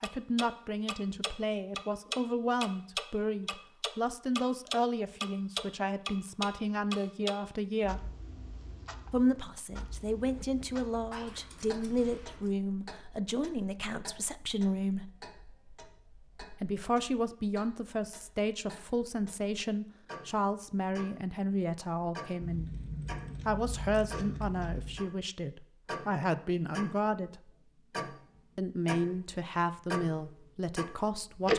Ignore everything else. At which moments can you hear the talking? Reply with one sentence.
You can hear the talking from 0.0 to 8.1 s, from 9.1 to 15.1 s, from 16.6 to 22.7 s, from 23.4 to 27.5 s and from 28.6 to 31.5 s.